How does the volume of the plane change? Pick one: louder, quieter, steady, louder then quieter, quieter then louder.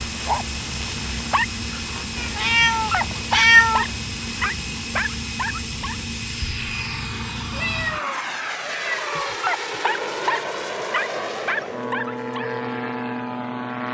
steady.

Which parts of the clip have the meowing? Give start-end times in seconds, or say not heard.
2.1-3.9, 7.5-9.4.